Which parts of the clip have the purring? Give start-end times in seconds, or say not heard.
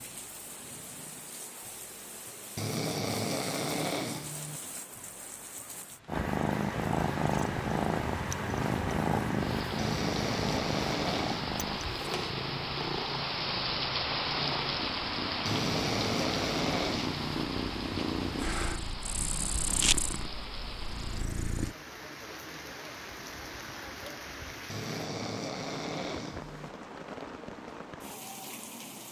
6.0-21.8.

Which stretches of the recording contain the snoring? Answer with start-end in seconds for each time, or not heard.
2.5-4.6, 9.8-11.5, 15.4-17.4, 24.6-26.7.